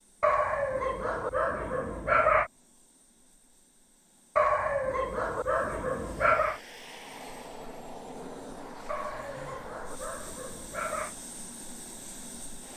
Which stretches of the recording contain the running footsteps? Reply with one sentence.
You can't hear the running footsteps here.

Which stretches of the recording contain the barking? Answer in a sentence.
You can hear the barking from 0.2 to 2.5 s, from 4.3 to 6.6 s and from 8.8 to 11.2 s.